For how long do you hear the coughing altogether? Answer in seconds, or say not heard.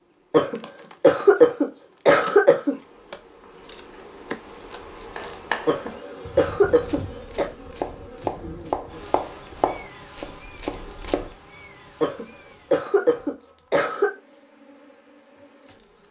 6 s.